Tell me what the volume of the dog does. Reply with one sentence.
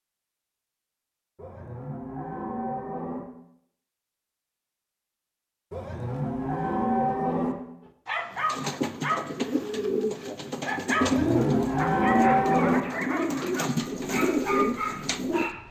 The volume of the dog stays about the same.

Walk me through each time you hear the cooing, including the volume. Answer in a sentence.
The cooing can be heard from 8.3 to 15.5 s, at a steady volume.